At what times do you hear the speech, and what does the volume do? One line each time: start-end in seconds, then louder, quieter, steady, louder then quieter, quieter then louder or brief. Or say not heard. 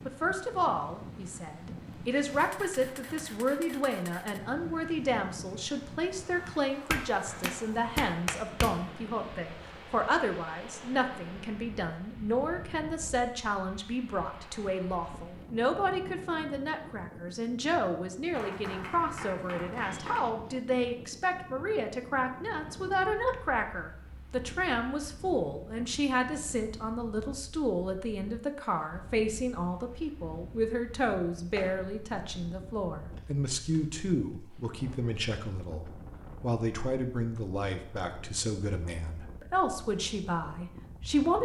0.1-41.3 steady.